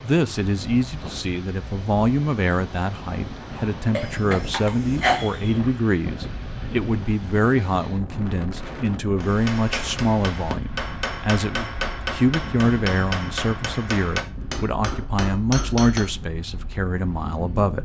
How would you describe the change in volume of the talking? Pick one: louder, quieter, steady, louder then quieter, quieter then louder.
steady.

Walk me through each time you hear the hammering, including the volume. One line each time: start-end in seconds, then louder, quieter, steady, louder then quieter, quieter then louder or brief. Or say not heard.
9.2-16.1 steady.